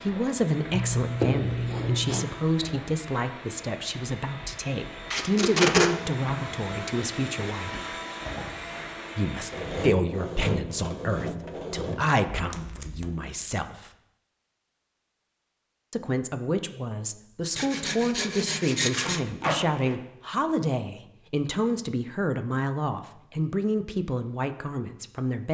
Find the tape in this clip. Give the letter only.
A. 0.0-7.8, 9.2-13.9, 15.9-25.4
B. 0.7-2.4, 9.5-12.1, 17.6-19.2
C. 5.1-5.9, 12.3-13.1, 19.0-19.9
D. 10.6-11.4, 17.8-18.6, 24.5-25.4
C.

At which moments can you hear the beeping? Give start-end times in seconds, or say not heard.
not heard.